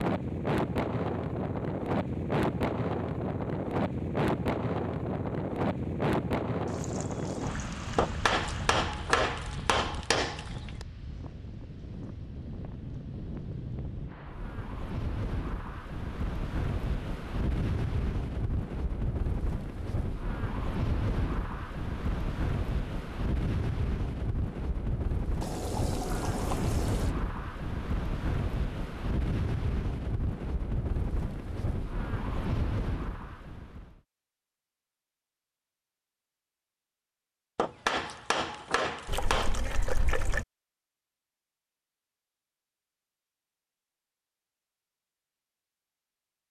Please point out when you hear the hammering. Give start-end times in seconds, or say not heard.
8.0-10.8, 37.5-39.6.